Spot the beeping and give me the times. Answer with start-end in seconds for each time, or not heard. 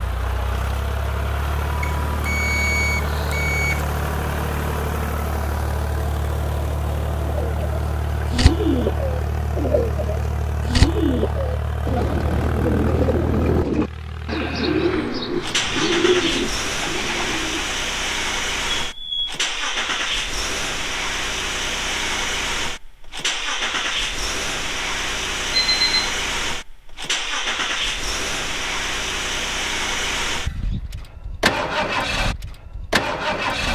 1.8-3.9, 18.8-19.4, 25.5-26.1.